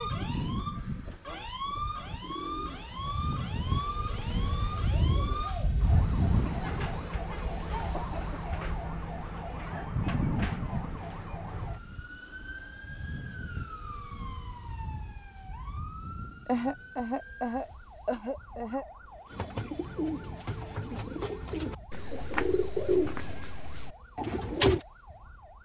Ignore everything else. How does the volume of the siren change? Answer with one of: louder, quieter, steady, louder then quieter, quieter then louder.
quieter.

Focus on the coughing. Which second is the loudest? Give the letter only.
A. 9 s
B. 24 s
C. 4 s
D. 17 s
D.